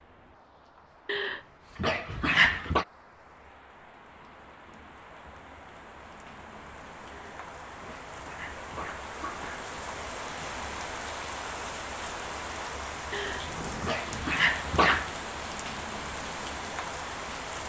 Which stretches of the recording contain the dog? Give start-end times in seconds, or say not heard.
1.1-2.9, 7.1-9.7, 13.1-15.2.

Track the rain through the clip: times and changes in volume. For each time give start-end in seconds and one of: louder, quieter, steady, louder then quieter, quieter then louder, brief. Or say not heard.
0.0-17.6 louder.